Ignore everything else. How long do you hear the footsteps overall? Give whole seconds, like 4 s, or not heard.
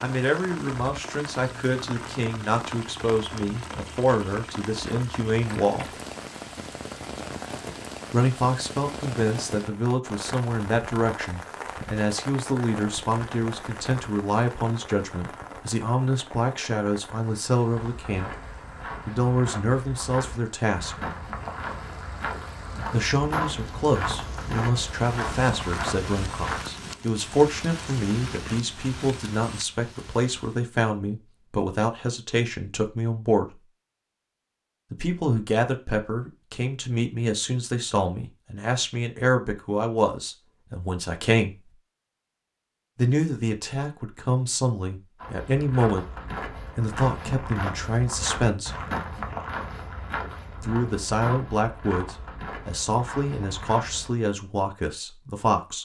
18 s.